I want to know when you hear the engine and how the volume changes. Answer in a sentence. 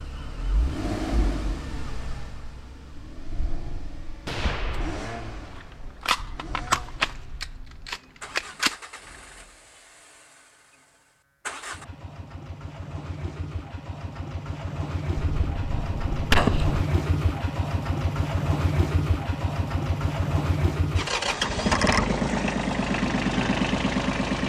You can hear the engine from 0.0 to 24.4 s, getting quieter then louder.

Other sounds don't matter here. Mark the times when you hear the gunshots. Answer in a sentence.
You can hear the gunshots from 4.2 to 5.2 s, from 6.0 to 8.8 s and from 15.2 to 16.9 s.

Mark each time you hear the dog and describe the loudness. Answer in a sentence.
The dog can't be heard in this clip.